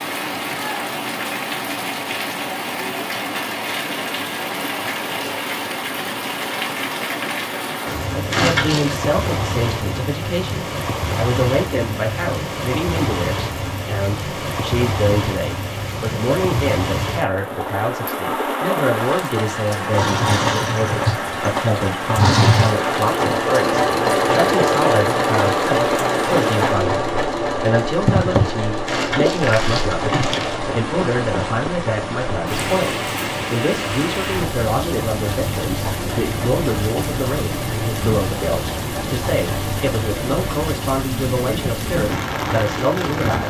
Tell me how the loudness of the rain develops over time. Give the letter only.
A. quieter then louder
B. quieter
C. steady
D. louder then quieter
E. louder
C.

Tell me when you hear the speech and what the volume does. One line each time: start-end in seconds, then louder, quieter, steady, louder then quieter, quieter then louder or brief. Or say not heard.
8.1-43.4 steady.